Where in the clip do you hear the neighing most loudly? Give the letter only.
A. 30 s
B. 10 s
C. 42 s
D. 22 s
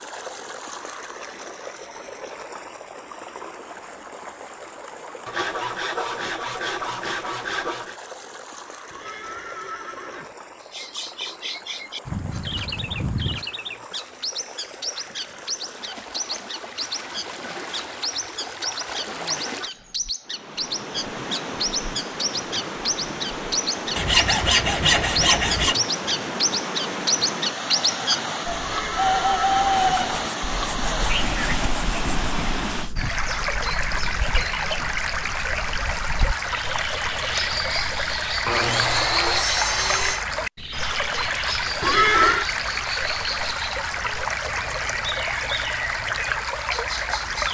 C.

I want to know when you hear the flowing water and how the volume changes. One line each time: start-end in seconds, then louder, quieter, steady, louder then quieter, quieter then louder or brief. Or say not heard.
0.0-47.4 louder.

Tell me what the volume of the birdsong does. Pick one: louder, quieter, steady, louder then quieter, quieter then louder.
louder then quieter.